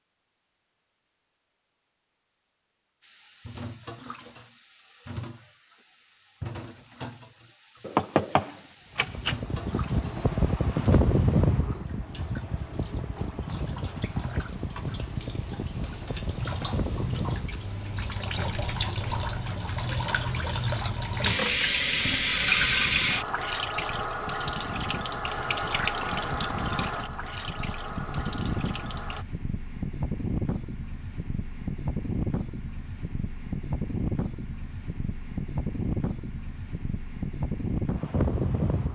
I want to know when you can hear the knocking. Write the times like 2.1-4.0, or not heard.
7.8-9.3.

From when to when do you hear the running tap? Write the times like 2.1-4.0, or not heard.
3.0-29.2.